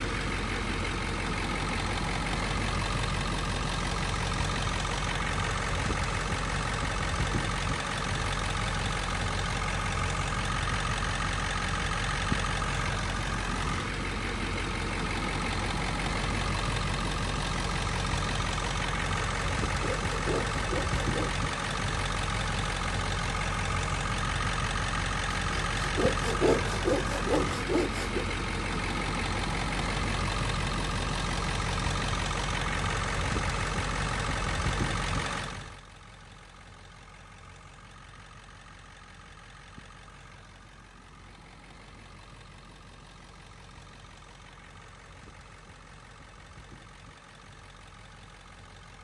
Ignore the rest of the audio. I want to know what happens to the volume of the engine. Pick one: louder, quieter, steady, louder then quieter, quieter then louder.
quieter.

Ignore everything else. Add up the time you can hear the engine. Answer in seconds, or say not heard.
49 s.